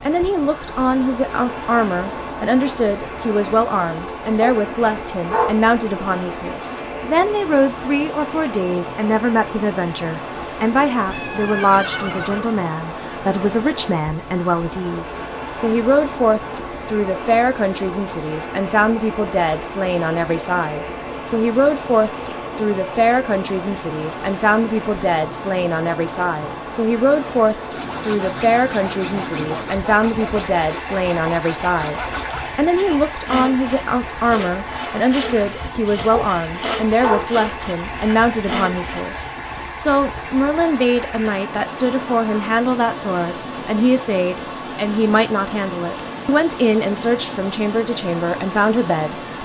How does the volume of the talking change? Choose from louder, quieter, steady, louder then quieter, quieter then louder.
steady.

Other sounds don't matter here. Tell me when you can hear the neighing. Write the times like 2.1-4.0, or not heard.
11.1-12.6.